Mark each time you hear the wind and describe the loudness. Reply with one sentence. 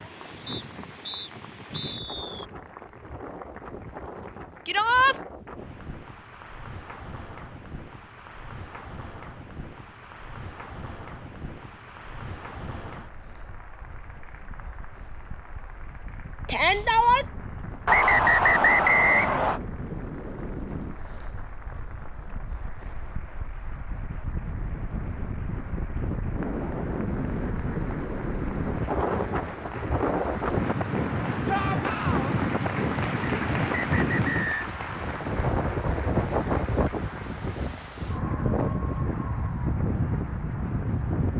The wind can be heard from 0.0 to 41.3 s, getting louder.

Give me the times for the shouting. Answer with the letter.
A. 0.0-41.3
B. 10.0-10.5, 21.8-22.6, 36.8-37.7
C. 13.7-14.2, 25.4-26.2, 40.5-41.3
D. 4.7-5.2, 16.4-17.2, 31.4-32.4
D.